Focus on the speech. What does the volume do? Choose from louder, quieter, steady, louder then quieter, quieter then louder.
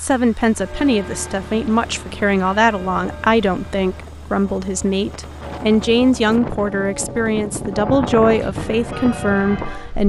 steady.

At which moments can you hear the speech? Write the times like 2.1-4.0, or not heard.
0.0-10.0.